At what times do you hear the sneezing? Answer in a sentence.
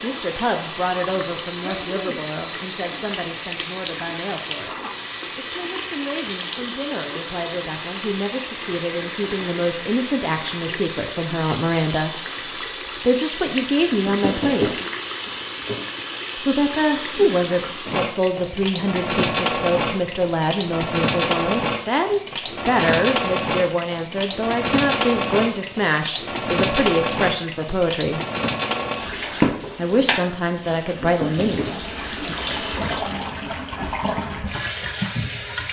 The sneezing can be heard from 1.6 to 2.2 s.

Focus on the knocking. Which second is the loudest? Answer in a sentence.
The volume of the knocking peaks at 15 seconds.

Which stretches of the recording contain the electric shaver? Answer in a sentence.
The electric shaver can't be heard in this clip.